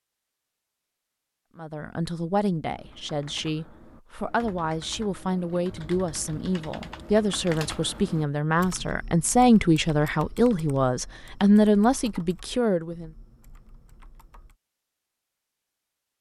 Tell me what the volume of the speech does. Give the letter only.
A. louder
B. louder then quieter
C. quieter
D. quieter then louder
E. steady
A.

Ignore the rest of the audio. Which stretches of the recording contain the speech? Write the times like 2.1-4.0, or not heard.
1.6-13.1.